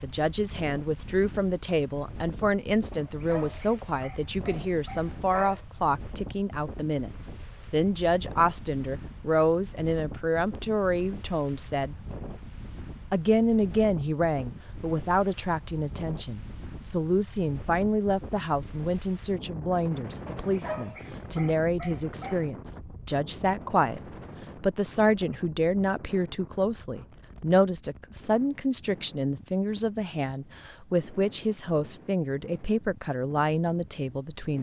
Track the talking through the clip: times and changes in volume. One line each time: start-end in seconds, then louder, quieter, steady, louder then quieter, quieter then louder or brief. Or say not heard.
0.0-11.9 steady
13.1-34.5 steady.